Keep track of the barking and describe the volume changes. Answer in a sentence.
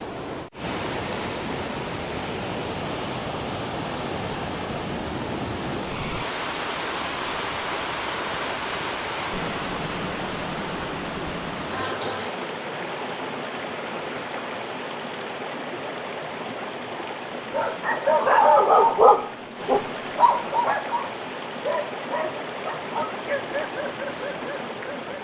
The loudness of the barking goes down.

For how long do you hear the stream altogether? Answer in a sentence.
You can hear the stream for 25 seconds altogether.